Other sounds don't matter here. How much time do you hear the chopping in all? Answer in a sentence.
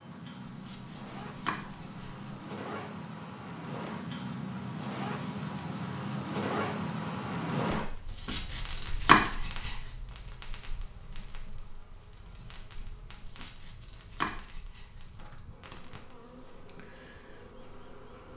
The chopping can be heard for 6 seconds in total.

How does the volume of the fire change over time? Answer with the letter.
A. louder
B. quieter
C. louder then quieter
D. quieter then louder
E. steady
C.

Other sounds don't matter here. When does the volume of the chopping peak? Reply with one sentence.
The volume of the chopping peaks at 9 seconds.